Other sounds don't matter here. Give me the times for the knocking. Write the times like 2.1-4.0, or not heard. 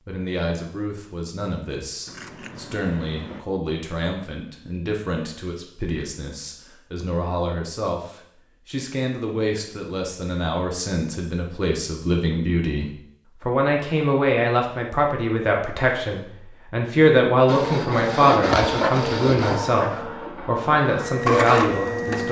not heard.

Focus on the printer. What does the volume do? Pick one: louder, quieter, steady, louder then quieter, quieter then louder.
quieter then louder.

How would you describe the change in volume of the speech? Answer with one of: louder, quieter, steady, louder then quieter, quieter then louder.
louder.